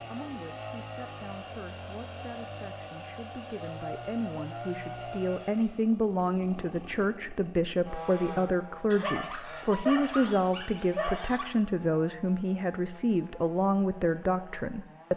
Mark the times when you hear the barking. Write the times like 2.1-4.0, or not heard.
8.9-11.5.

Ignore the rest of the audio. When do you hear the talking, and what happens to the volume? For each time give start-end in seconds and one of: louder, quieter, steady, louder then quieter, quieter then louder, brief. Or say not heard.
0.0-15.1 louder.